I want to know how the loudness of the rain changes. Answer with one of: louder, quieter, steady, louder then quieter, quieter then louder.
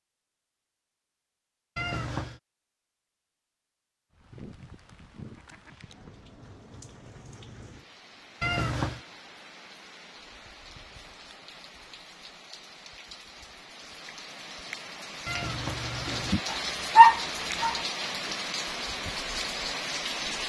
louder.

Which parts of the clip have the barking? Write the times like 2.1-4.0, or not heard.
16.5-17.8.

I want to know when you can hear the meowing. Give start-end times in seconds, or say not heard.
1.8-2.4, 8.4-9.0, 15.2-16.4.